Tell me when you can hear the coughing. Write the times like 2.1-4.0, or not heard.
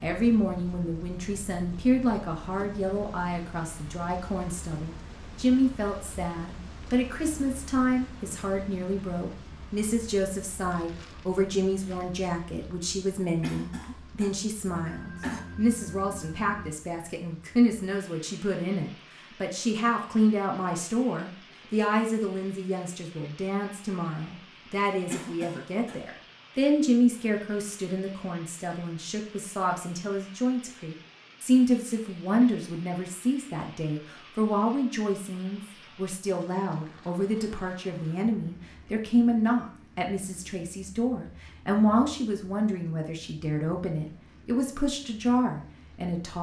13.4-15.4, 25.1-26.1.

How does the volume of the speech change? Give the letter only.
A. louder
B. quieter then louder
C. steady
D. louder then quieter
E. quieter
C.